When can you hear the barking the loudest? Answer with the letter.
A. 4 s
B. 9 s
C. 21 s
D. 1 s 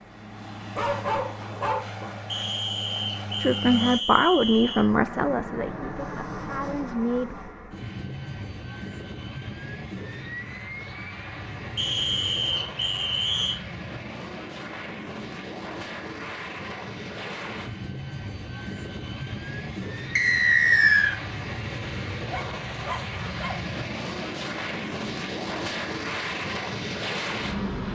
D.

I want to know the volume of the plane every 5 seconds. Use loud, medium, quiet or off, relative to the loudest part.
medium, medium, medium, medium, loud, loud.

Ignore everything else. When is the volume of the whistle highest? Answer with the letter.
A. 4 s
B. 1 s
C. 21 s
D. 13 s
C.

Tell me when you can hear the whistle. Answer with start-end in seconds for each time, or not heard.
2.2-4.9, 11.8-13.6, 20.1-21.1.